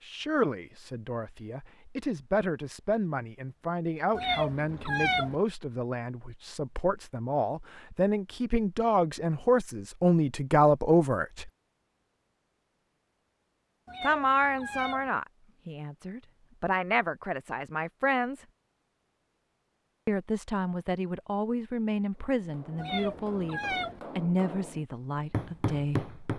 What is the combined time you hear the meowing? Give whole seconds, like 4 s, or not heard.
4 s.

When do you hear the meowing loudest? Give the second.
5 s.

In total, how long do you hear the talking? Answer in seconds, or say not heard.
22 s.